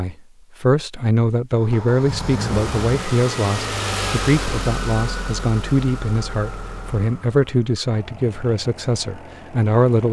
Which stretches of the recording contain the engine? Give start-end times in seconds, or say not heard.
1.6-10.0.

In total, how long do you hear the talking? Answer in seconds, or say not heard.
10 s.